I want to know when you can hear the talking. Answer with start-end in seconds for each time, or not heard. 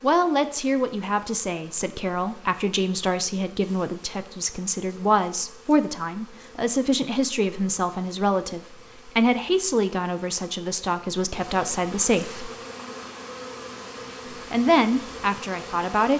0.0-12.5, 14.3-16.1.